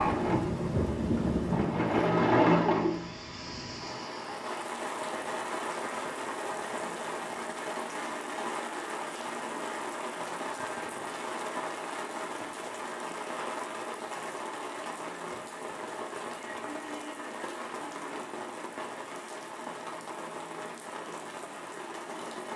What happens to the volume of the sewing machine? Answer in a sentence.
The volume of the sewing machine goes up, then down.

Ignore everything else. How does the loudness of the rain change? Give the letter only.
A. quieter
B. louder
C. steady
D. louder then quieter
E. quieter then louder
A.